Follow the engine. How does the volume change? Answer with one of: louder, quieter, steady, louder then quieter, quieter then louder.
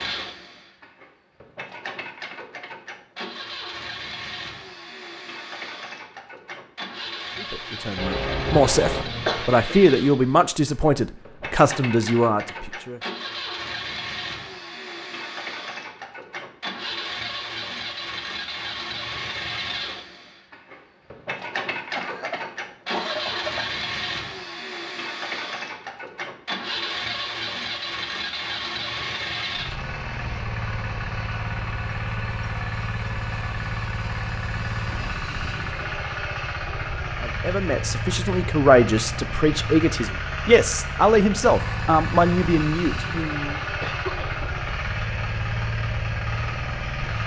louder.